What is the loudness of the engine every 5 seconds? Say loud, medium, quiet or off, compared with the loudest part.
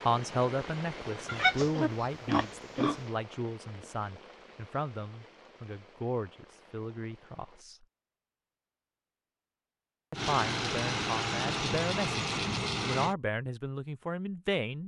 quiet, off, loud.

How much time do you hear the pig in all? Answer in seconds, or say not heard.
2 s.